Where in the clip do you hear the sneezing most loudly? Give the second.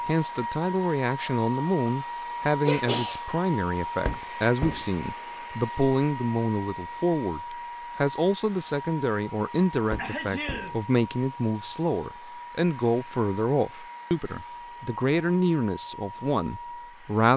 3 s.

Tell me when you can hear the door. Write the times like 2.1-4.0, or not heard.
4.0-4.8, 9.9-10.8.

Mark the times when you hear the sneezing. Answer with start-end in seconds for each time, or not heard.
2.6-3.2, 9.9-10.8.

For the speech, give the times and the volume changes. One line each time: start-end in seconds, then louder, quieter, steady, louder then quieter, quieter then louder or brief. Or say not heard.
0.1-17.3 steady.